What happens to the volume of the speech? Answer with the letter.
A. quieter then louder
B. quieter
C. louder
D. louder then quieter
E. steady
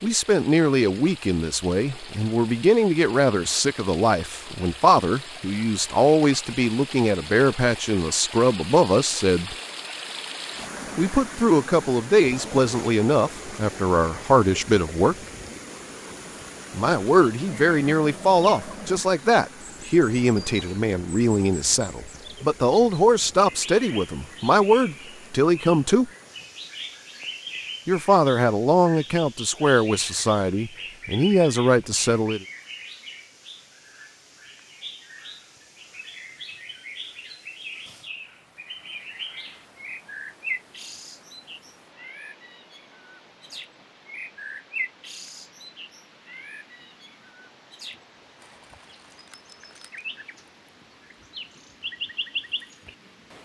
E.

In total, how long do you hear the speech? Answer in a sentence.
The speech can be heard for 28 seconds in total.